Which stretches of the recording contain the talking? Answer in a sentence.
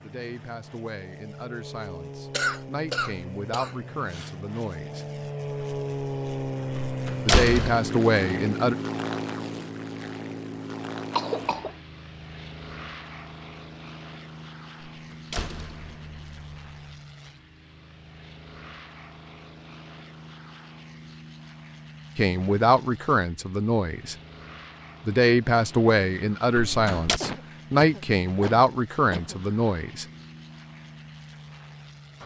You can hear the talking from 0.0 to 5.0 s, from 7.2 to 8.8 s, from 22.1 to 24.1 s and from 25.1 to 30.1 s.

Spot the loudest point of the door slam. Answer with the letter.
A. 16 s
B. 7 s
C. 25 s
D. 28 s
B.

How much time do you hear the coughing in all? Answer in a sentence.
You can hear the coughing for 5 seconds altogether.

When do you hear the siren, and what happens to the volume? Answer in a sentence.
The siren can't be heard in this clip.